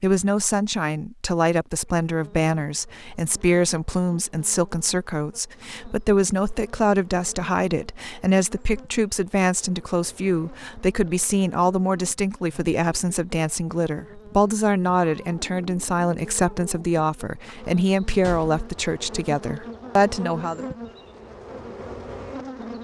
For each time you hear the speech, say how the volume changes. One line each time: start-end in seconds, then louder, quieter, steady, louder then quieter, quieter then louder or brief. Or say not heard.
0.0-20.6 steady.